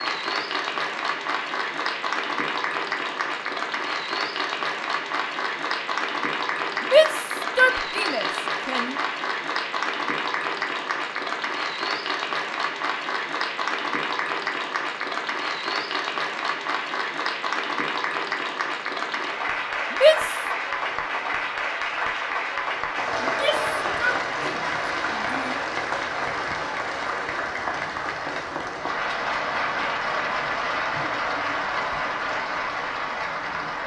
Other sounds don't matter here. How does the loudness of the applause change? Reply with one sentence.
The loudness of the applause stays about the same.